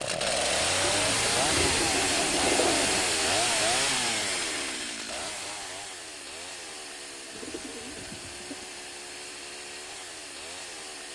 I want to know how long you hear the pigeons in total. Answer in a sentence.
You can hear the pigeons for 4 seconds altogether.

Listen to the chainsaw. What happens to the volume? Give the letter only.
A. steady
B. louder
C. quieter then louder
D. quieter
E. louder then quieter
D.